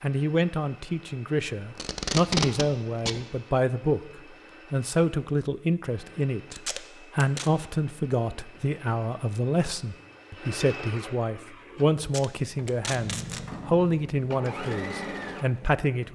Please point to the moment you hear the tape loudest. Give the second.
2 s.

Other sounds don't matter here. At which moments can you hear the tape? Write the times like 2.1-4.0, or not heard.
1.8-3.2, 6.5-7.5, 12.0-13.4.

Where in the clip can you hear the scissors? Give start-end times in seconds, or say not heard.
not heard.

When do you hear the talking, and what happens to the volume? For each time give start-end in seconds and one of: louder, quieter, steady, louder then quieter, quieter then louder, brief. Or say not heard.
0.0-16.1 steady.